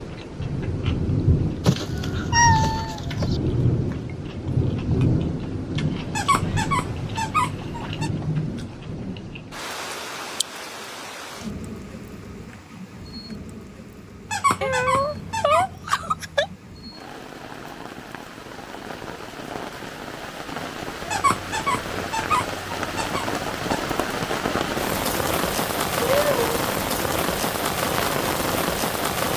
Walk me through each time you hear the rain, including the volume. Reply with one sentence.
You can hear the rain from 0.0 to 29.3 s, getting quieter then louder.